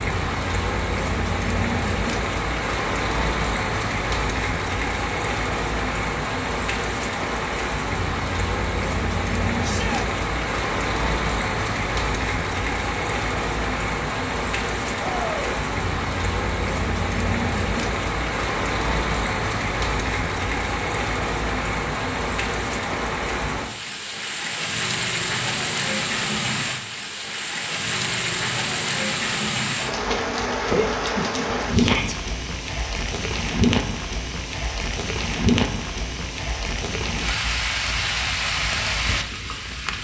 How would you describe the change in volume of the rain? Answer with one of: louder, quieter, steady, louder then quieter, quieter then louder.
steady.